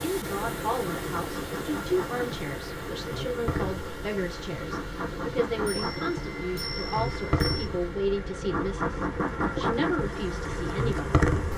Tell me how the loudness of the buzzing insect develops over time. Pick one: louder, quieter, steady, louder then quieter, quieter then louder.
louder.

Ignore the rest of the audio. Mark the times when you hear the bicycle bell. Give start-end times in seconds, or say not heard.
5.7-7.7.